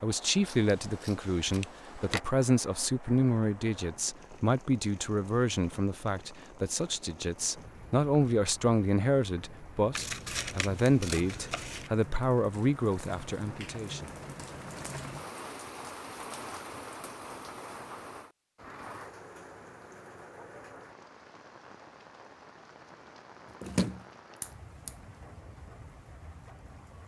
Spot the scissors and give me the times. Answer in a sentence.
The scissors can be heard from 0.5 to 2.2 s, from 9.9 to 11.9 s and from 23.4 to 24.9 s.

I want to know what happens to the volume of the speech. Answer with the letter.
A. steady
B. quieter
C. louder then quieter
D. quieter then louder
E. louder
A.